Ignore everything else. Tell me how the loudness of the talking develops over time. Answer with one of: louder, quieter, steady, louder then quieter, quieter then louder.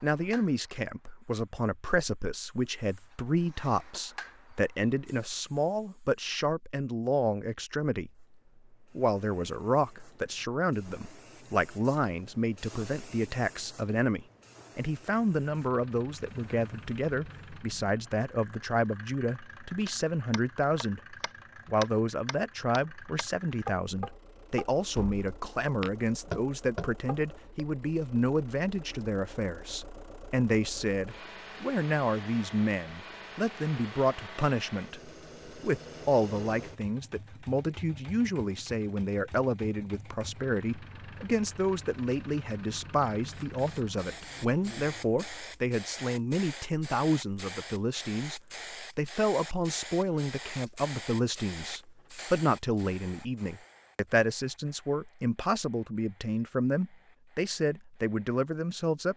steady.